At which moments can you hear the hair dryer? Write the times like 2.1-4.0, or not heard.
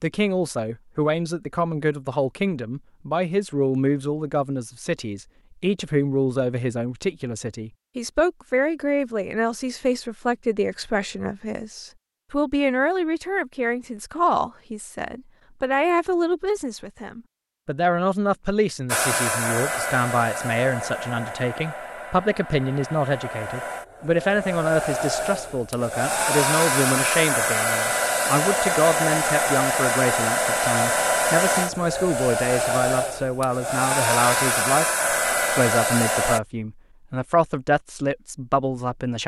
18.9-36.4.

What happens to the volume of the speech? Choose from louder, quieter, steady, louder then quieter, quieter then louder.
steady.